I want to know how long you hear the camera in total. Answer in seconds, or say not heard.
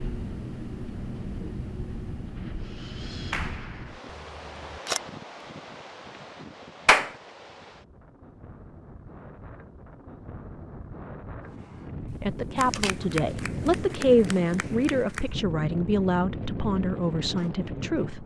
2 s.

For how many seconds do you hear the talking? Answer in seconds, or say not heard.
6 s.